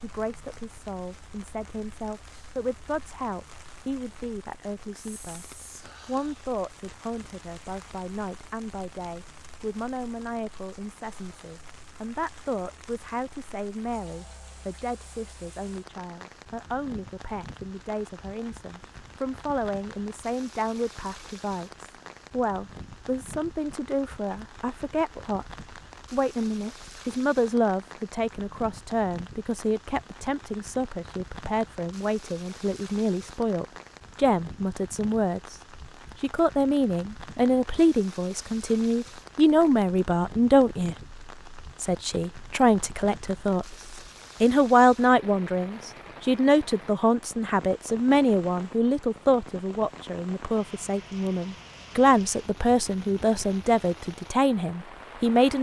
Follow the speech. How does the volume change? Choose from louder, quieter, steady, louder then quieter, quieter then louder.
louder.